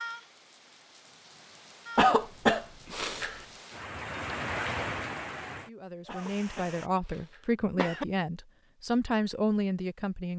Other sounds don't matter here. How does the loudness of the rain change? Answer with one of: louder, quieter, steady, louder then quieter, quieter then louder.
louder then quieter.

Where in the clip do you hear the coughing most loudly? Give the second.
2 s.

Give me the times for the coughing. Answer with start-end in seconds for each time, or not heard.
1.9-3.5, 6.0-8.1.